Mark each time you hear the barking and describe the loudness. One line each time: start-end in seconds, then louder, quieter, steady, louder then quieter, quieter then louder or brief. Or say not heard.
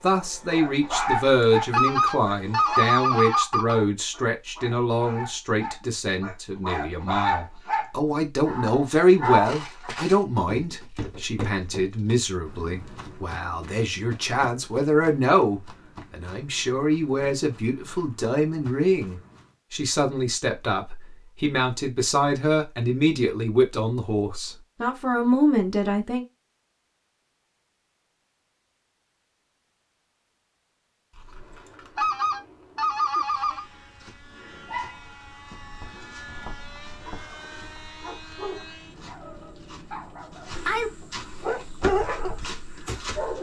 0.5-9.9 quieter then louder
34.6-43.3 louder.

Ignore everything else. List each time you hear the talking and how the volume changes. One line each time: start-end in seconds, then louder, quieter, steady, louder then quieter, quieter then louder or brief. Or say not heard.
0.0-26.2 steady.